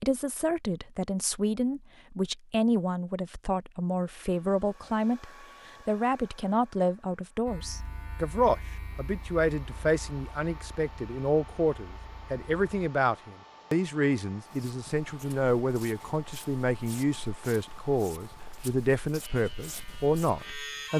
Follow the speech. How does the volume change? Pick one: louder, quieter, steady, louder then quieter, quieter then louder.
steady.